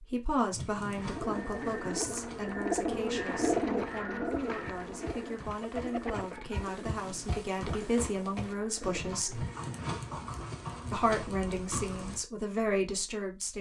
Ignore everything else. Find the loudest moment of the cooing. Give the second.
4 s.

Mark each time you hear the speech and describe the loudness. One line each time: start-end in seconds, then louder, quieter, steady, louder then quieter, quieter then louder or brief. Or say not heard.
0.0-9.4 quieter then louder
10.9-13.5 brief.